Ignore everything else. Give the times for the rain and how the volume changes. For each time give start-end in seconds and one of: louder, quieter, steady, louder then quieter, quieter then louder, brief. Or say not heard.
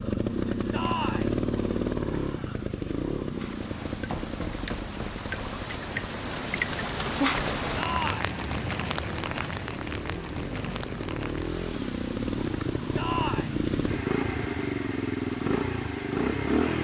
3.2-16.6 louder then quieter.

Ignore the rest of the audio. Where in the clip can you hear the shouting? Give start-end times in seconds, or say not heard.
0.7-1.4, 7.8-8.3, 12.9-13.6.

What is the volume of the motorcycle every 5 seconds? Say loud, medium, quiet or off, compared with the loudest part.
loud, quiet, loud, loud.